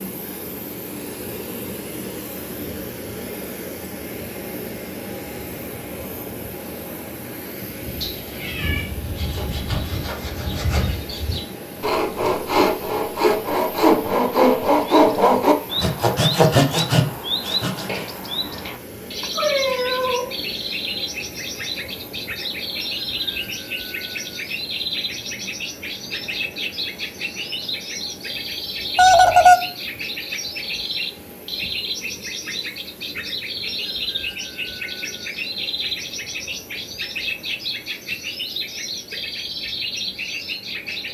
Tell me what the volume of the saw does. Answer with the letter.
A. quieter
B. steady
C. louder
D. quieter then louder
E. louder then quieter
C.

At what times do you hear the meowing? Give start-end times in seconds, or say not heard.
8.0-8.9, 19.4-20.4, 28.9-29.6.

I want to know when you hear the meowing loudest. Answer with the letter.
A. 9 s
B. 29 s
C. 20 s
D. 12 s
B.